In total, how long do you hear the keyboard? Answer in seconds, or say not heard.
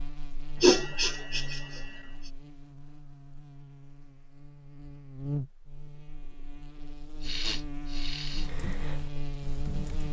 2 s.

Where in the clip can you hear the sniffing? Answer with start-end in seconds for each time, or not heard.
0.6-1.8, 7.2-8.5.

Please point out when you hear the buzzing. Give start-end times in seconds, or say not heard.
0.0-10.0.